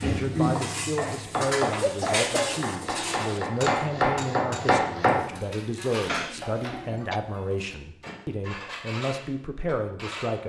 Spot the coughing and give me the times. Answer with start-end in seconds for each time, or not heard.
1.8-2.6, 6.0-7.2.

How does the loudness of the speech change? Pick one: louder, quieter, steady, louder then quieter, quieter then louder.
steady.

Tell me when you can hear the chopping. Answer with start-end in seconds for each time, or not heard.
0.0-5.2.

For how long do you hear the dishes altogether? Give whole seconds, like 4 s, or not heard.
10 s.